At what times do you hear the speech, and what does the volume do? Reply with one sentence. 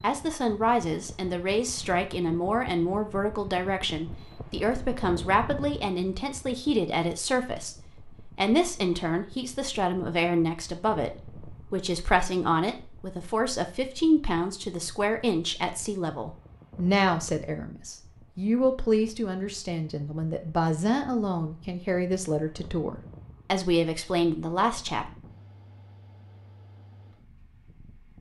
The speech can be heard from 0.0 to 25.1 s, at a steady volume.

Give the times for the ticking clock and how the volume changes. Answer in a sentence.
You can't hear the ticking clock here.